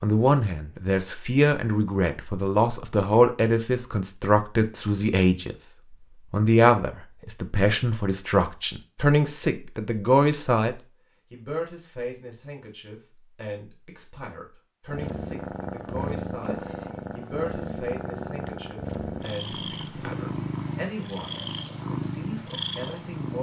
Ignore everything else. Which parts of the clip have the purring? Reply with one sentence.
You can hear the purring from 14.8 to 23.3 s.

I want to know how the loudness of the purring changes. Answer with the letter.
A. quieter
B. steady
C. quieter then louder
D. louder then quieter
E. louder
B.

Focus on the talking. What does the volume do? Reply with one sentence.
The loudness of the talking goes down.